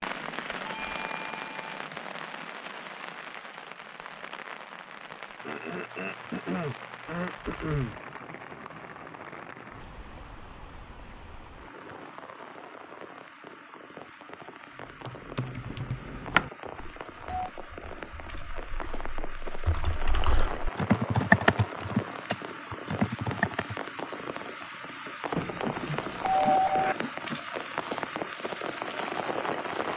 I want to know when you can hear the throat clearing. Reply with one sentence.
You can hear the throat clearing from 5.4 to 8.0 s and from 25.6 to 27.4 s.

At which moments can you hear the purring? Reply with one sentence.
The purring can't be heard in this clip.